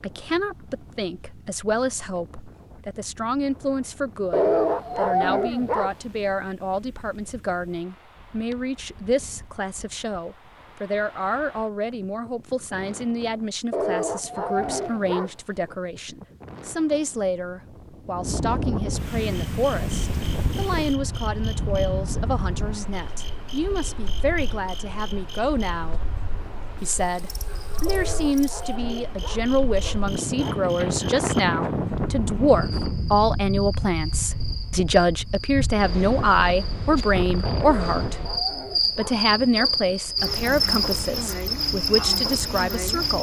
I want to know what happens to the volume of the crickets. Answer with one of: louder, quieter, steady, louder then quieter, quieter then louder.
louder.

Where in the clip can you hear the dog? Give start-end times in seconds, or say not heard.
4.3-5.9, 13.7-15.8, 27.9-30.6, 37.6-39.9.